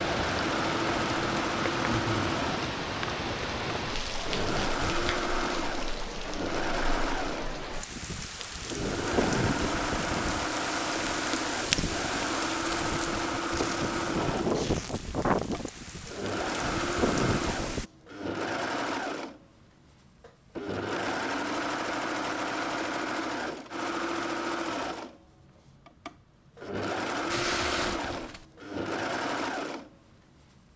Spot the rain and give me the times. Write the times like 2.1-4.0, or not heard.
0.0-17.9.